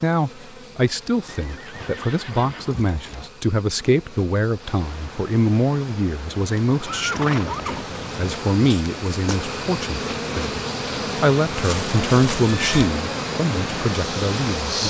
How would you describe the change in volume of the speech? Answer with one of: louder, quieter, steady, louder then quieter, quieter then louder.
steady.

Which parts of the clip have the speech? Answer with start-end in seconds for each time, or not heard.
0.0-14.8.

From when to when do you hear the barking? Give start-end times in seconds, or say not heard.
not heard.